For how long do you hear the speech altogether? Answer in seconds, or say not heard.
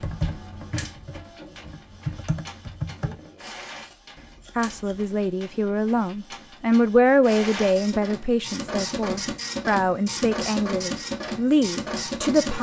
8 s.